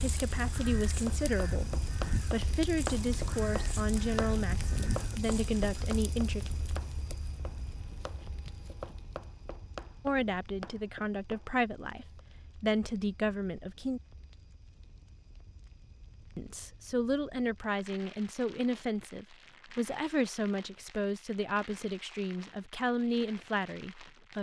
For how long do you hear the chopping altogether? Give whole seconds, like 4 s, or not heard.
11 s.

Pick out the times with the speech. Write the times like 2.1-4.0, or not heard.
0.0-6.5, 10.1-14.0, 16.4-24.3.